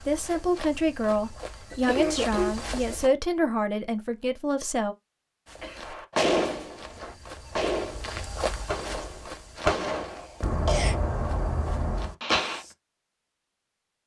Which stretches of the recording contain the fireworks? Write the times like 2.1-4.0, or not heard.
5.8-12.6.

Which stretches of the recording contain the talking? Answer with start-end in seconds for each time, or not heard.
0.1-5.0.